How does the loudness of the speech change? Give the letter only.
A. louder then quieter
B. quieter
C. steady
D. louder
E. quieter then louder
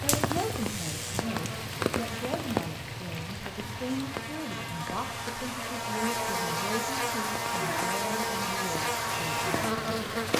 C.